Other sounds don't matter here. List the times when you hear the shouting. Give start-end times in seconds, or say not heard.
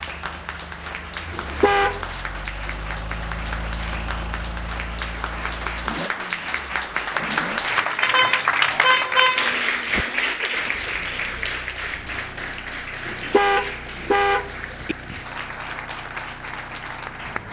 not heard.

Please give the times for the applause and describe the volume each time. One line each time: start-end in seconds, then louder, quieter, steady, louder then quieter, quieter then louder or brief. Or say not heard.
0.0-17.4 louder then quieter.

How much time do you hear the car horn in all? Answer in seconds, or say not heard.
5 s.